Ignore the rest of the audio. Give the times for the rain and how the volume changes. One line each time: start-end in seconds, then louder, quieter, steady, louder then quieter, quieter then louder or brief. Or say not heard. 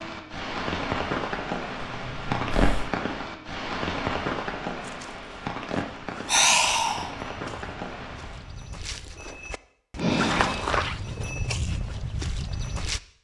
0.0-8.7 quieter.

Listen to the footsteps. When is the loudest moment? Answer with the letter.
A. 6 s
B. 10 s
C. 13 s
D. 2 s
B.